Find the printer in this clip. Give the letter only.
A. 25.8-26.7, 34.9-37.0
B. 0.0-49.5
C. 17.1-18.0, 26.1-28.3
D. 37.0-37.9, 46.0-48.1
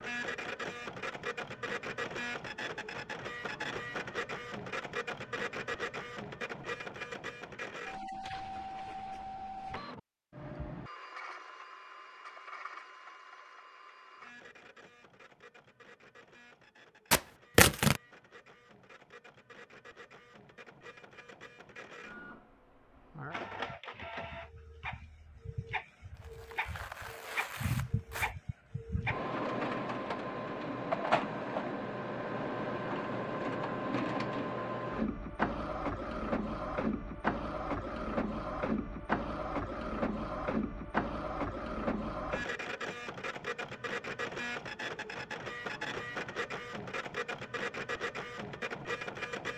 B.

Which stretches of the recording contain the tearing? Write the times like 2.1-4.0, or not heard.
17.1-18.0, 26.1-28.3.